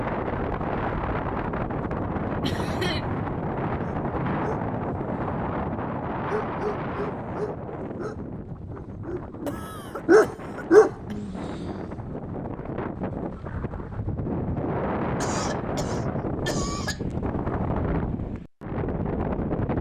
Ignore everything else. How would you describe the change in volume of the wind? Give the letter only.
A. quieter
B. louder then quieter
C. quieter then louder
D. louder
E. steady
C.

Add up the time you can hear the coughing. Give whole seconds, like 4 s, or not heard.
4 s.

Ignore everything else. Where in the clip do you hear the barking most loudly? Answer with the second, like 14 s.
11 s.